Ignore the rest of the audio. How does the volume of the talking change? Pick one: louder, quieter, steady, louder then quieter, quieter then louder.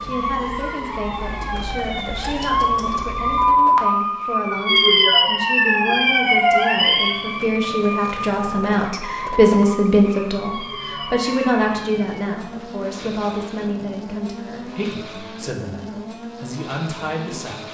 louder then quieter.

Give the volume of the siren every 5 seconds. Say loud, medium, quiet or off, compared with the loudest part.
loud, loud, quiet, off.